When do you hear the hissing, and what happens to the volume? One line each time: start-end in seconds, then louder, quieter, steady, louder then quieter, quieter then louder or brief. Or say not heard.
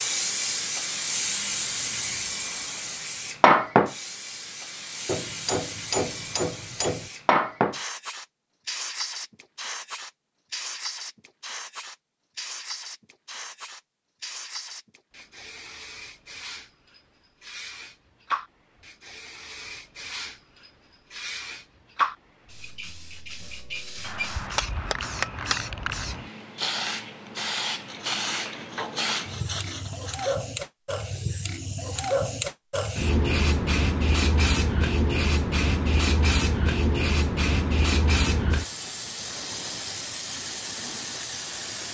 0.0-41.8 quieter then louder.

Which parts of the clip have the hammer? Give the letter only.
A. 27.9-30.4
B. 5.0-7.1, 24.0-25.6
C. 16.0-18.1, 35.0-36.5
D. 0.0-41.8
B.